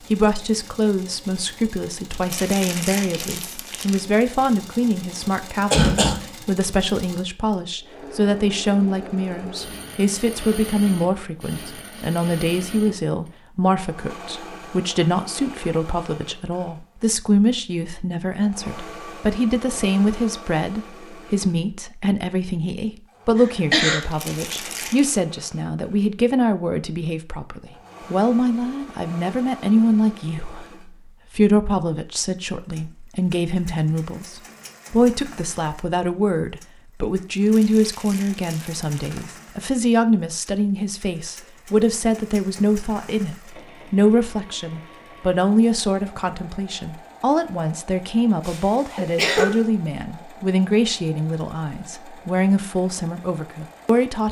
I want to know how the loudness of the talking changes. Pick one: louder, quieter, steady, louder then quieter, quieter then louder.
steady.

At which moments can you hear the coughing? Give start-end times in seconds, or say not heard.
5.7-6.7, 23.4-24.0, 48.5-49.6.